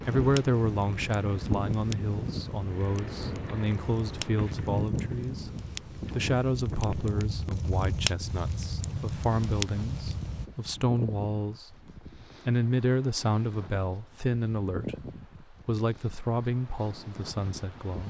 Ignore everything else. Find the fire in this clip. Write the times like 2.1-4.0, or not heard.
0.0-10.5.